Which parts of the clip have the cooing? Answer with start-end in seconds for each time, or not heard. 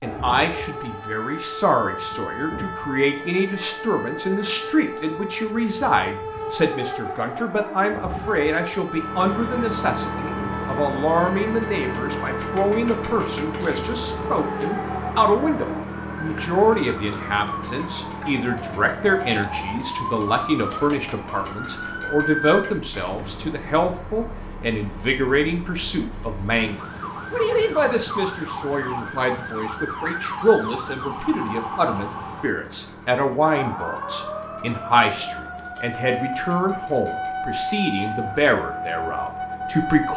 not heard.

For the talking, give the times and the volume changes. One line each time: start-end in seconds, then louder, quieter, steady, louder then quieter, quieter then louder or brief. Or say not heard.
0.0-40.1 steady.